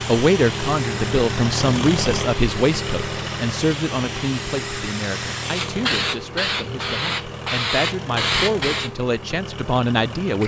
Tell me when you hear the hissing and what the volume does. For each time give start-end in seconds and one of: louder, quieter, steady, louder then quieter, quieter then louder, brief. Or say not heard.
0.0-8.9 louder.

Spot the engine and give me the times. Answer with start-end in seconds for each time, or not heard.
0.0-10.4.